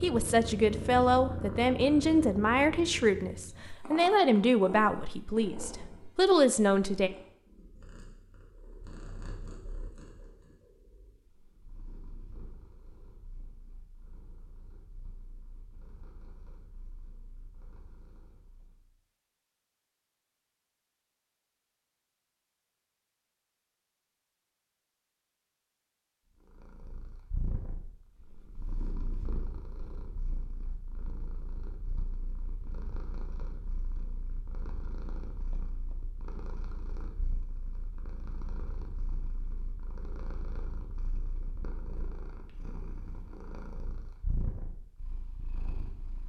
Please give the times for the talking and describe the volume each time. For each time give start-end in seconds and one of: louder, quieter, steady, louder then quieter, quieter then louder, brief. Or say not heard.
0.0-7.1 steady.